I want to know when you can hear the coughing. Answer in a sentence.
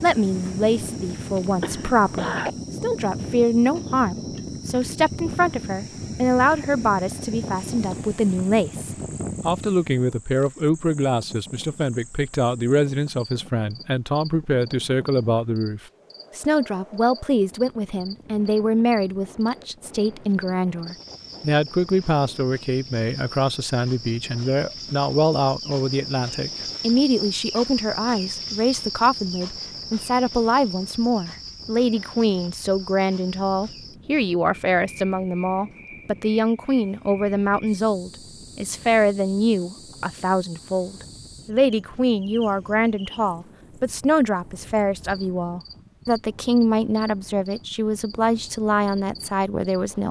You can hear the coughing from 1.6 to 2.5 s.